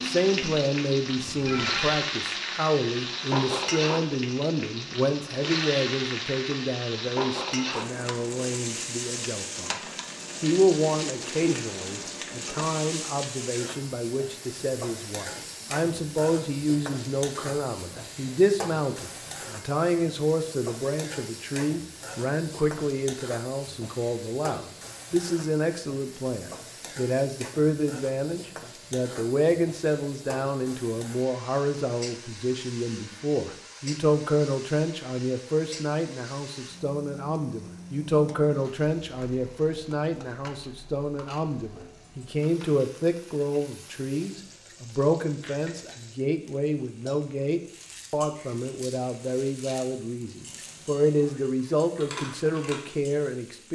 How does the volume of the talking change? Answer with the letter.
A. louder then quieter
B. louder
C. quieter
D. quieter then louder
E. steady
E.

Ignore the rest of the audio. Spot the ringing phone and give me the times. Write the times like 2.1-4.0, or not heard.
1.1-1.9.